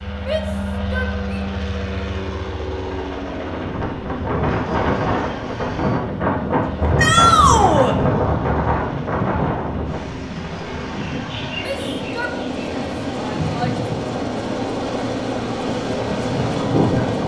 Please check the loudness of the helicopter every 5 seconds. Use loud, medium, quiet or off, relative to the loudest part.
medium, medium, loud, loud.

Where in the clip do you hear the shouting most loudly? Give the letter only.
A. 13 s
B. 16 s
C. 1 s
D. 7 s
D.